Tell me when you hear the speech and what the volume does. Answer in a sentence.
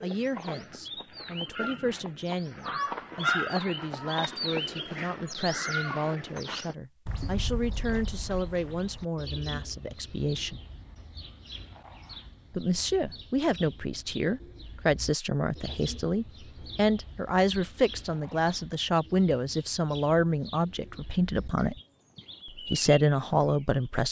The speech can be heard from 0.0 to 10.6 s, at a steady volume; from 12.5 to 21.8 s, at a steady volume; and briefly from 22.6 to 24.0 s.